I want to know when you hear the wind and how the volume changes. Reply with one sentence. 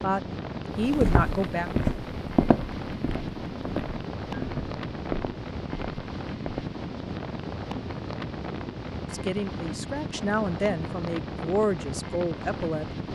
The wind can be heard from 0.0 to 13.1 s, at a steady volume.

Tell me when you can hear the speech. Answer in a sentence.
The speech can be heard from 0.0 to 1.7 s and from 9.1 to 12.8 s.